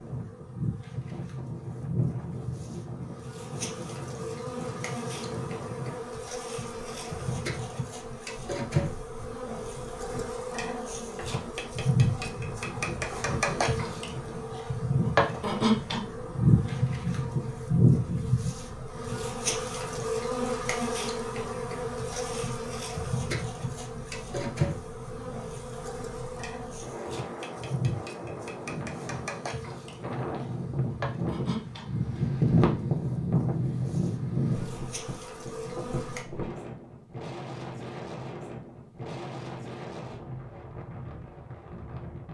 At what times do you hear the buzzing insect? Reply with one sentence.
The buzzing insect can be heard from 0.0 to 36.2 s.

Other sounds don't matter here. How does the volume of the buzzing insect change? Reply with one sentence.
The loudness of the buzzing insect goes up, then down.